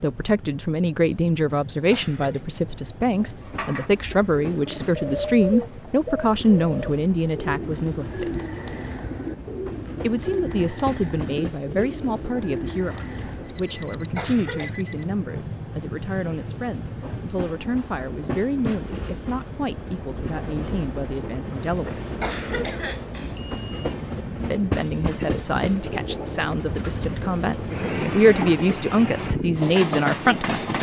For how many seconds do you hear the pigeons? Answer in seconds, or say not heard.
10 s.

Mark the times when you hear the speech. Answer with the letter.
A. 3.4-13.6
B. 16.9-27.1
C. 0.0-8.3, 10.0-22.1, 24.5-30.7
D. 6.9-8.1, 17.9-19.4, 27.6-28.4
C.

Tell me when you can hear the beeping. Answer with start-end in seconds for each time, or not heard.
2.5-3.7, 13.4-15.1, 23.1-23.9.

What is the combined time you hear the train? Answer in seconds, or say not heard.
31 s.